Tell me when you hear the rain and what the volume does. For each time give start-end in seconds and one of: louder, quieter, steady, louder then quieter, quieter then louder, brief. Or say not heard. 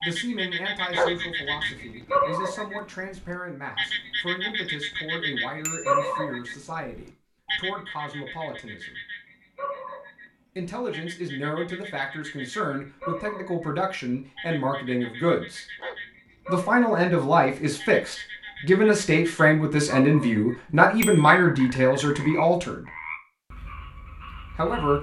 not heard.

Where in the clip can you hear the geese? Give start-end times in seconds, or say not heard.
not heard.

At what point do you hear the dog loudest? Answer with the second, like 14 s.
1 s.